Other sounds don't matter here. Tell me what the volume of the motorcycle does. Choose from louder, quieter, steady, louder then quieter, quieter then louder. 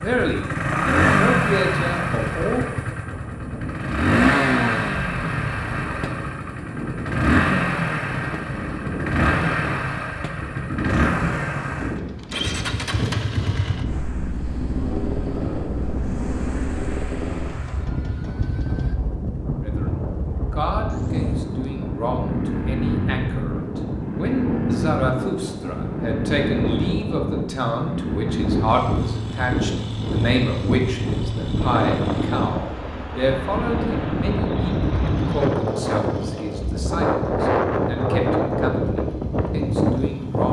quieter.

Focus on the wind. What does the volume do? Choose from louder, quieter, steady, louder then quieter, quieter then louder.
louder.